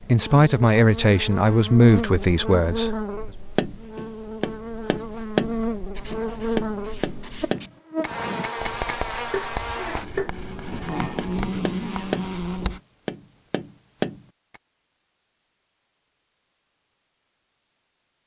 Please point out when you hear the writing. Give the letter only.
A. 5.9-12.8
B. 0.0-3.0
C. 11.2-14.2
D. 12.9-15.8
A.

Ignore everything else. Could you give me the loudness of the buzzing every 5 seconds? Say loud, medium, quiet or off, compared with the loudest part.
loud, loud, loud, off.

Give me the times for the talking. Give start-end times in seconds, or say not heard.
0.0-3.0.